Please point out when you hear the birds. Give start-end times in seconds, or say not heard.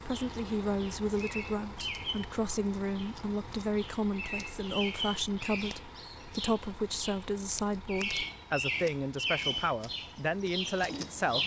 0.1-11.4.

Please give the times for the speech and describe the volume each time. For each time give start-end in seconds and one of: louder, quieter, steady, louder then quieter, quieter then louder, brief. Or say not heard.
0.0-11.4 steady.